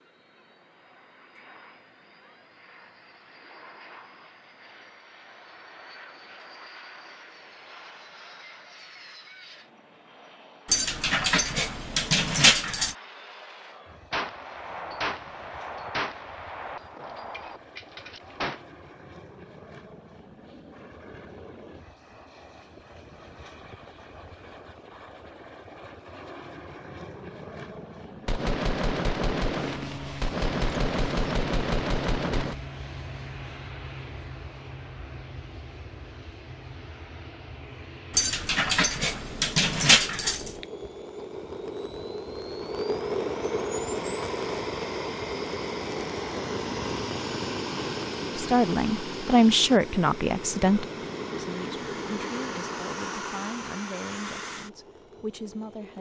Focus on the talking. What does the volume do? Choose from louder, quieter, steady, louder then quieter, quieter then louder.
quieter.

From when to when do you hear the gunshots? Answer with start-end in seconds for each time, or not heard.
14.1-18.6, 28.2-32.5.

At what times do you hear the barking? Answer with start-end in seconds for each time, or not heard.
10.7-12.9, 38.1-40.6.